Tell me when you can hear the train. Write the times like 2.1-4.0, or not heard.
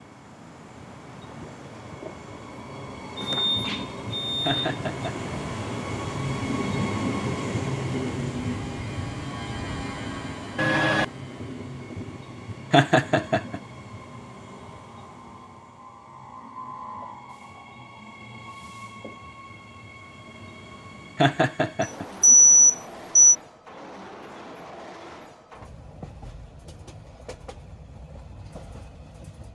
0.0-29.4.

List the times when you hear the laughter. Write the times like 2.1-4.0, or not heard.
4.5-5.3, 12.7-13.6, 21.1-22.1.